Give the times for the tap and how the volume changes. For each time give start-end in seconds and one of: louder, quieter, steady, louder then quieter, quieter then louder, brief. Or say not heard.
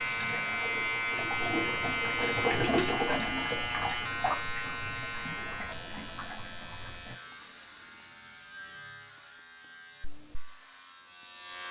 0.0-7.2 louder then quieter.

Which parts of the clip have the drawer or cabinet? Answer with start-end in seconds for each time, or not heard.
not heard.